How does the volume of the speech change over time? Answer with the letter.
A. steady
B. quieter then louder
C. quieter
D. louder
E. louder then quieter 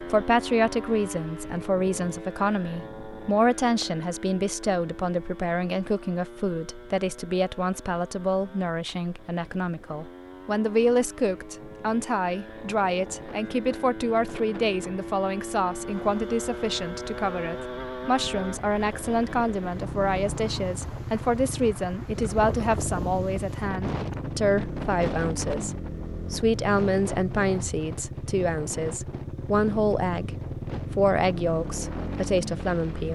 A.